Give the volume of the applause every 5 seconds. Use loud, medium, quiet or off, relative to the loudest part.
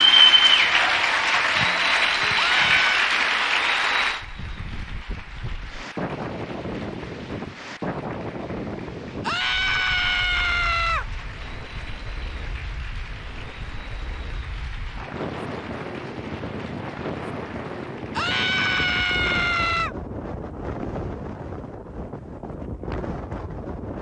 loud, quiet, quiet, quiet, off.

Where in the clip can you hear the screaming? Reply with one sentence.
You can hear the screaming from 2.4 to 3.0 s, from 9.2 to 11.1 s and from 18.1 to 19.9 s.